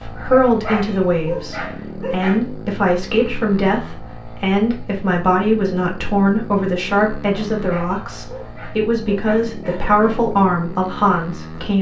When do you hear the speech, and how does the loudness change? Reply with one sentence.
The speech can be heard from 0.0 to 11.7 s, at a steady volume.